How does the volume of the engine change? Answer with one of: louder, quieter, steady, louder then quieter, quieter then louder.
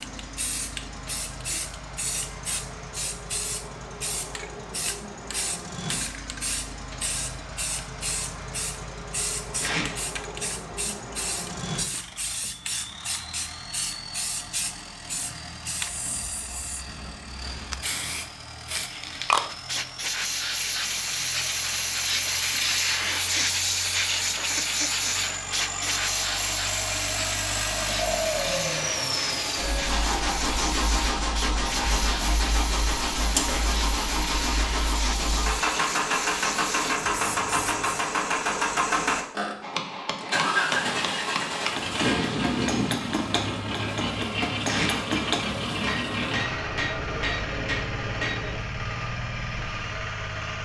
louder.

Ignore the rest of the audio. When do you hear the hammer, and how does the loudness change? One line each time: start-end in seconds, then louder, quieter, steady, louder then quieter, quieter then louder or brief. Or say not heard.
39.6-48.6 steady.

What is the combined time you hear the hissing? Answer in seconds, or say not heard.
38 s.